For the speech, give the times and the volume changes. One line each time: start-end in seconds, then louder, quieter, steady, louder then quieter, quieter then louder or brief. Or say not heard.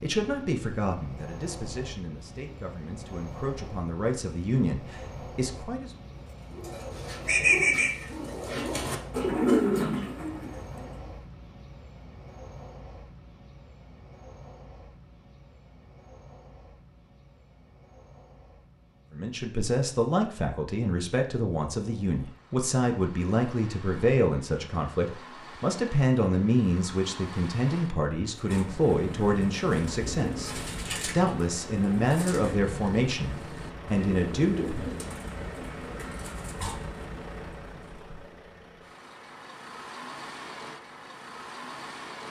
0.0-5.9 quieter then louder
19.1-34.9 steady.